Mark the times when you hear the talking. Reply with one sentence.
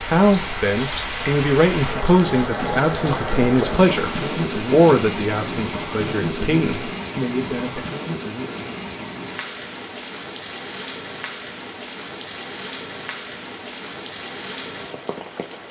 The talking can be heard from 0.0 to 7.8 s.